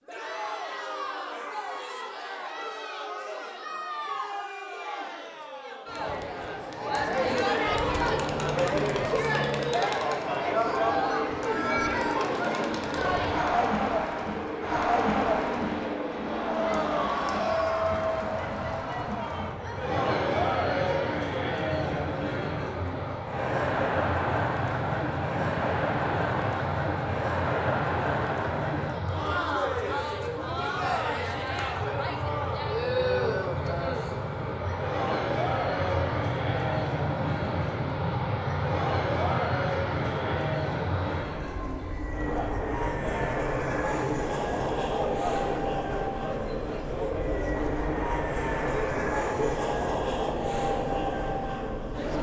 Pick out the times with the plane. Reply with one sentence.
The plane can be heard from 7.8 to 52.1 s.